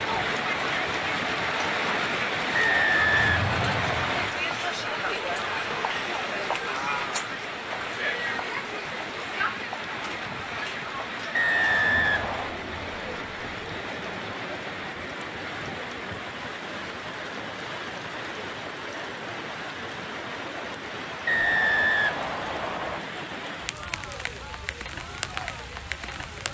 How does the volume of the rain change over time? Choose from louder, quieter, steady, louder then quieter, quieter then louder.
quieter.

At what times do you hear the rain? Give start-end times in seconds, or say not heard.
0.0-26.4.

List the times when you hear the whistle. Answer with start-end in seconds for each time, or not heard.
2.5-4.3, 11.3-12.6, 21.2-23.0.